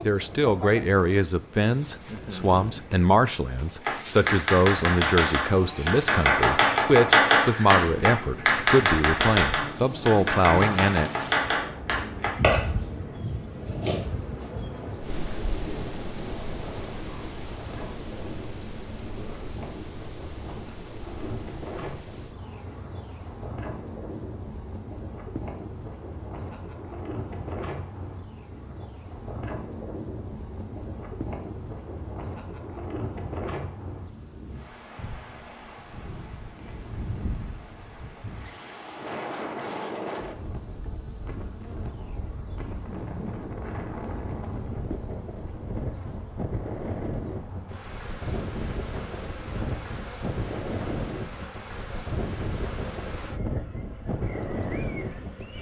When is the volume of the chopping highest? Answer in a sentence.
The loudest moment of the chopping is at 7 seconds.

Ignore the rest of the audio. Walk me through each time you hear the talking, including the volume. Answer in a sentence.
You can hear the talking from 0.0 to 11.1 s, at a steady volume.